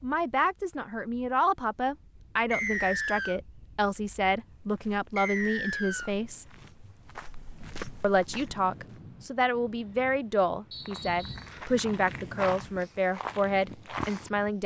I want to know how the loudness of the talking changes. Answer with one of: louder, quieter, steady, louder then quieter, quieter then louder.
steady.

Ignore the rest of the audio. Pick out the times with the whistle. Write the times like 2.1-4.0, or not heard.
2.5-3.4, 5.2-6.1, 10.7-11.5.